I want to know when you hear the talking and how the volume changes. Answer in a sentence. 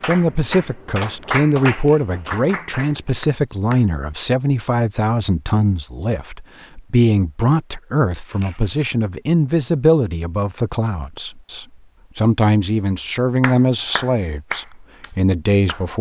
You can hear the talking from 0.1 to 15.9 s, at a steady volume.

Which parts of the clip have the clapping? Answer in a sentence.
The clapping can be heard from 0.0 to 3.9 s and from 13.4 to 15.8 s.